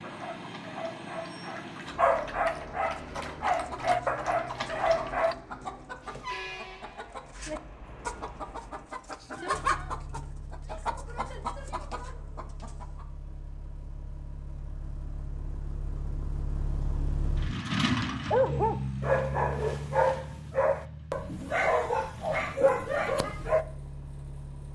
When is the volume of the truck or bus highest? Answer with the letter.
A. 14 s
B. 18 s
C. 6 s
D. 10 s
B.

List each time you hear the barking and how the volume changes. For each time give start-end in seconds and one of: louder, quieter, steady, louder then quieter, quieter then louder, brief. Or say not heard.
0.0-5.3 louder
18.3-23.6 steady.